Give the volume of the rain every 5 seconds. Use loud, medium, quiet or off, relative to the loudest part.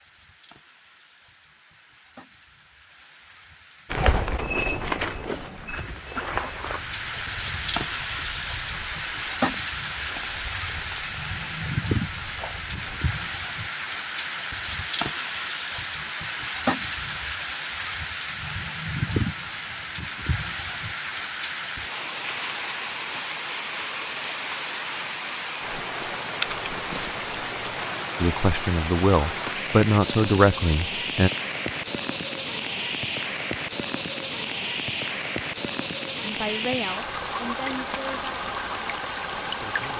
quiet, loud, loud, loud, loud, loud, loud, loud.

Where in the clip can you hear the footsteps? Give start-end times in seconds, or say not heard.
3.9-13.2.